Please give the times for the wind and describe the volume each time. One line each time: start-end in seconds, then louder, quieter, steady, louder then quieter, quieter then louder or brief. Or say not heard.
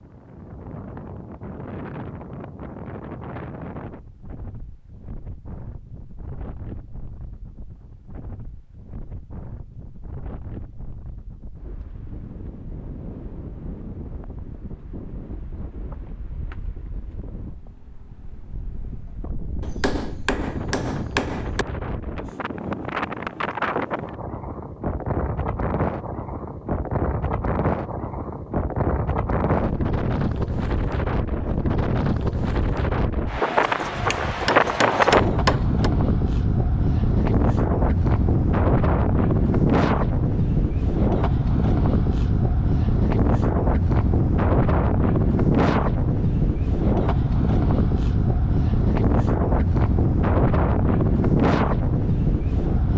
0.0-52.9 louder.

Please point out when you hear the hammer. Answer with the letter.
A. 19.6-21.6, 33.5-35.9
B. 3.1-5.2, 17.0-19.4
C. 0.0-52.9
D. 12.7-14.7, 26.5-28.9
A.